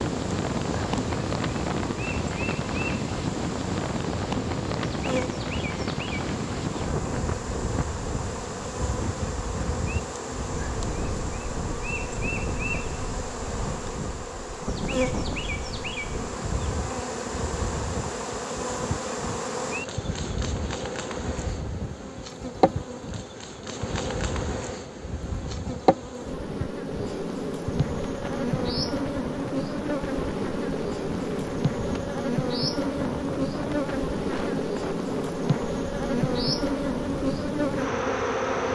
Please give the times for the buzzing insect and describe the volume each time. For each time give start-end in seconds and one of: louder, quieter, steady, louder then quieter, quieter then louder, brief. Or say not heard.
0.0-38.6 louder.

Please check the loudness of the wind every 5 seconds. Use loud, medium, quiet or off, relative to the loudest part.
loud, loud, medium, medium, medium, medium, medium, medium.